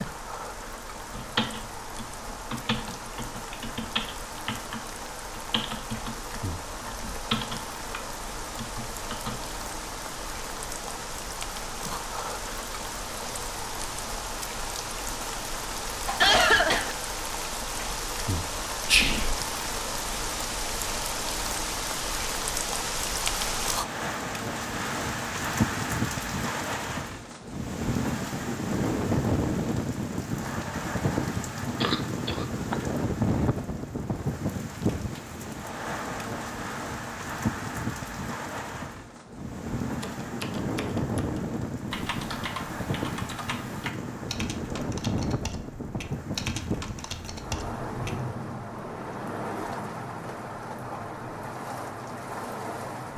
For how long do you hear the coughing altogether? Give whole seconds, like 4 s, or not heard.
2 s.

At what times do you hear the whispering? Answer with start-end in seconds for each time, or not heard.
18.9-19.4.